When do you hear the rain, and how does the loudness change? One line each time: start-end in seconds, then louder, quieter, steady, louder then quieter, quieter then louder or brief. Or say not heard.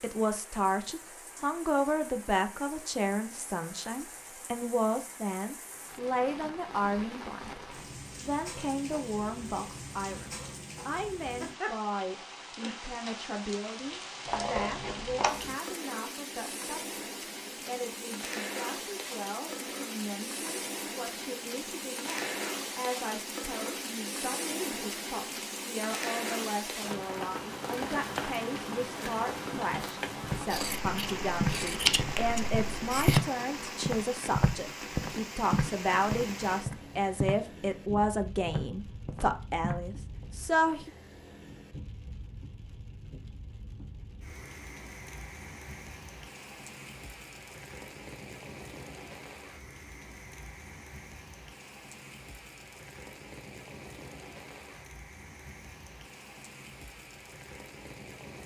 0.0-58.4 louder then quieter.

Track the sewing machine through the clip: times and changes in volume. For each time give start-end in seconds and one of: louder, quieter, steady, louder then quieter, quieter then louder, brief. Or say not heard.
not heard.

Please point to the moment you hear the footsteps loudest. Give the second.
33 s.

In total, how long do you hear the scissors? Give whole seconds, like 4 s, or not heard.
4 s.